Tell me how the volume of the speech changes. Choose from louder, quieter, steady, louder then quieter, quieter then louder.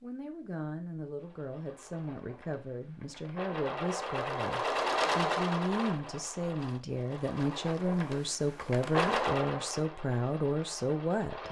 louder.